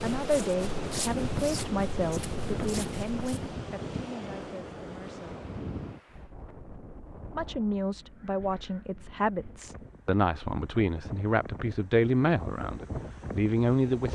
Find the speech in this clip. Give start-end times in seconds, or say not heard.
0.0-5.4, 7.3-14.1.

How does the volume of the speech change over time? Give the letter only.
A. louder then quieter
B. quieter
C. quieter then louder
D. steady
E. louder
C.